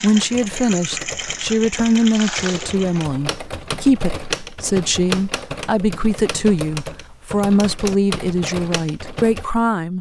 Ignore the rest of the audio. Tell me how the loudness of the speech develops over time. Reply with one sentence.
The loudness of the speech stays about the same.